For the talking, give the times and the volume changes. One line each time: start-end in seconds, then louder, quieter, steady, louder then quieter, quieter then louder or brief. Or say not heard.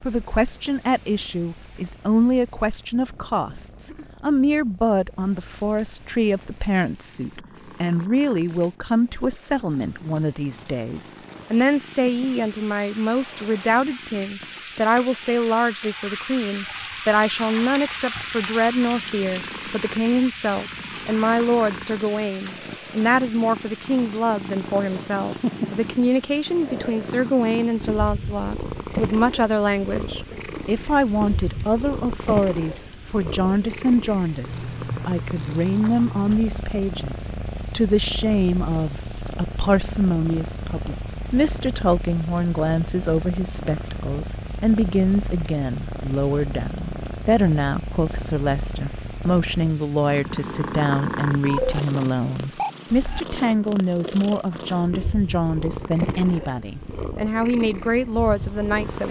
0.0-59.0 steady.